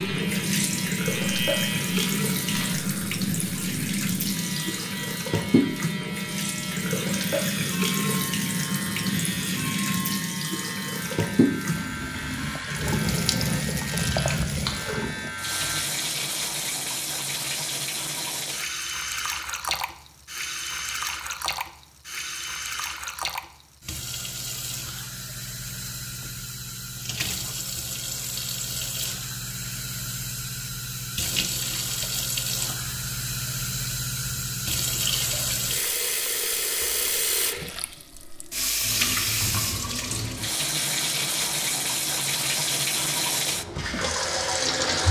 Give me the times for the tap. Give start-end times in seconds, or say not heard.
0.0-45.0.